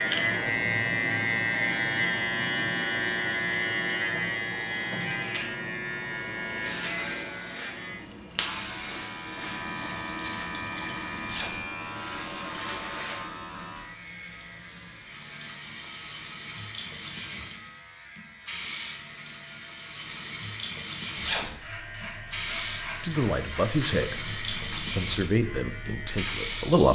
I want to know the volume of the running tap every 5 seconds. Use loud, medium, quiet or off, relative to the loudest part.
quiet, medium, medium, medium, loud, loud.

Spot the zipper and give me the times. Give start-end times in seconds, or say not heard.
11.2-11.7, 21.1-21.6.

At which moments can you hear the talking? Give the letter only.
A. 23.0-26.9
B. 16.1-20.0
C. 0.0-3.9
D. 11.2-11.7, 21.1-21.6
A.